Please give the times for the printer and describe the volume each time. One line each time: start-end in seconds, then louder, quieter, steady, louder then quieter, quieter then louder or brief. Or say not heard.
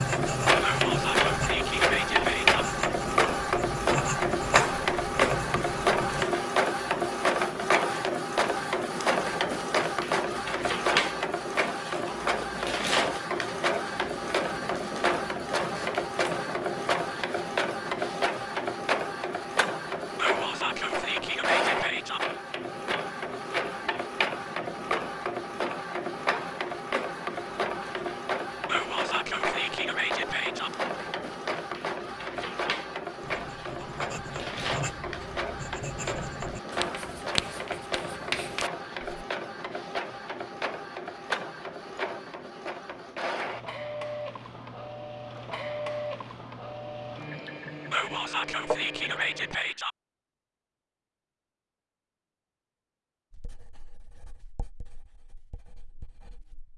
0.0-49.7 quieter.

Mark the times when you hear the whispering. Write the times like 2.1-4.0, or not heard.
0.6-2.6, 20.1-22.2, 28.6-30.7, 47.9-50.0.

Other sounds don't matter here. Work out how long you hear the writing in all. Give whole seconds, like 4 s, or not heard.
16 s.